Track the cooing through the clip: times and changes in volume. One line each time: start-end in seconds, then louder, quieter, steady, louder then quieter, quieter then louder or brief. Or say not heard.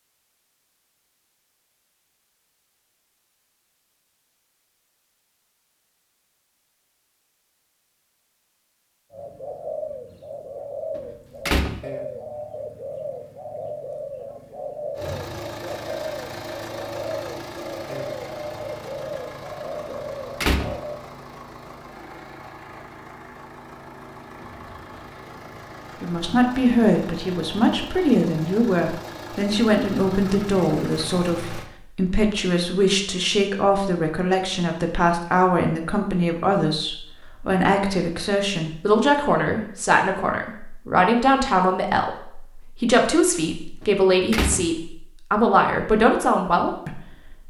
9.1-21.0 steady.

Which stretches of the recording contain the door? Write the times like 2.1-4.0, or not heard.
10.9-11.8, 19.9-20.8, 43.8-44.6.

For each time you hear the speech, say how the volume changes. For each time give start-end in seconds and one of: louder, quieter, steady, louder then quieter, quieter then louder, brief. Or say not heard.
26.0-47.0 steady.